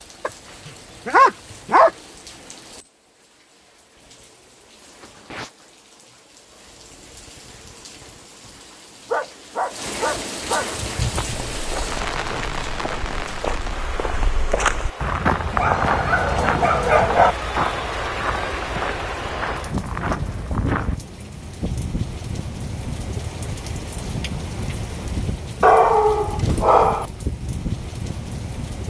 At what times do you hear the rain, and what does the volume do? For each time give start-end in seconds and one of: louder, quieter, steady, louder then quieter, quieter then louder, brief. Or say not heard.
0.0-28.8 louder.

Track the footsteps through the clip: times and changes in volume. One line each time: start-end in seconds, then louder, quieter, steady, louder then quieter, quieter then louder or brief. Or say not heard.
10.6-20.9 louder then quieter.